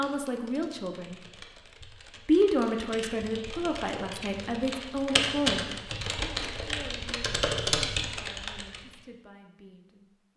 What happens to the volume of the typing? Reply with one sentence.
The loudness of the typing goes up.